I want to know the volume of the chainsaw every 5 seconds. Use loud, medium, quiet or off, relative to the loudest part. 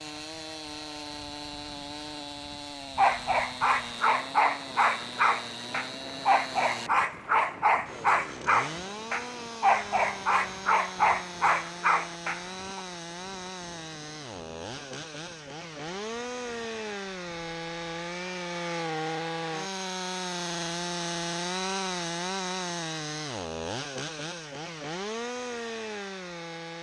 medium, medium, medium, loud, loud, loud.